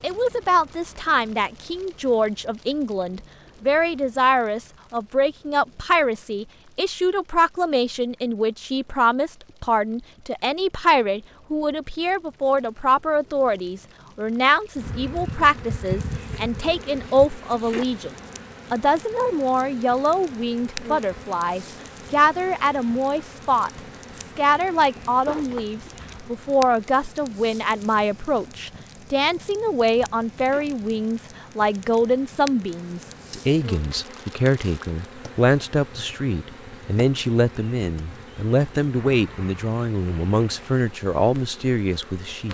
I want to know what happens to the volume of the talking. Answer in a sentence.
The loudness of the talking stays about the same.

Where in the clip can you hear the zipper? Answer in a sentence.
You can hear the zipper from 25.2 to 26.2 s.